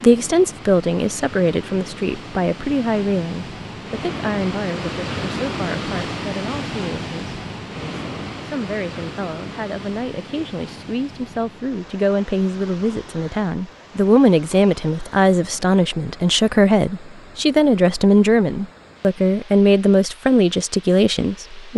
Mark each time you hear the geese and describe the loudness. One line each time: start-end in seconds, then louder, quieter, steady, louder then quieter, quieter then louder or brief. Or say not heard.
not heard.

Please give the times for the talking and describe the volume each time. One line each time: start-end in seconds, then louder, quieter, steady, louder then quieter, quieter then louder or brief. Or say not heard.
0.0-21.7 quieter then louder.